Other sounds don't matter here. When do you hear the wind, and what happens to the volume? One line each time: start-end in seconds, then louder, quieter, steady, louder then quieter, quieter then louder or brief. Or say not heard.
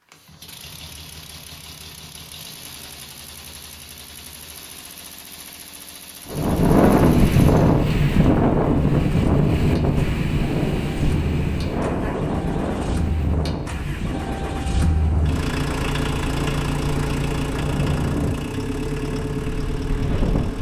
6.3-20.5 quieter.